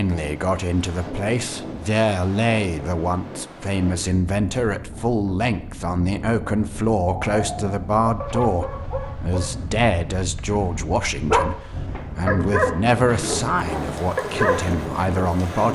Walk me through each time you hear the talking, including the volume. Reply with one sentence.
You can hear the talking from 0.0 to 15.6 s, at a steady volume.